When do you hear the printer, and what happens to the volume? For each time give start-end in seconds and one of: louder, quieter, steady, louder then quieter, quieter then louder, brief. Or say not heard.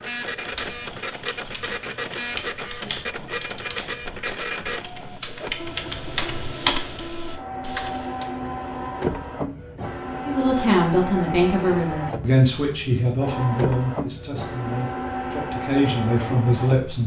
0.0-17.0 steady.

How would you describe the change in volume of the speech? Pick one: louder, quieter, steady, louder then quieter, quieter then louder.
quieter then louder.